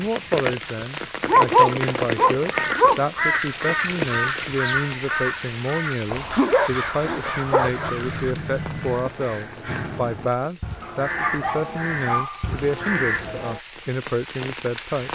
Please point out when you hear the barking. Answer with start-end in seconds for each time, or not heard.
1.2-3.0, 6.1-7.9, 10.8-12.7.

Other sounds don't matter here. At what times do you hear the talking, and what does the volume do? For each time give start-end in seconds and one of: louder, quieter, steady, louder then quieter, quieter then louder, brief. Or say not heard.
0.0-15.1 steady.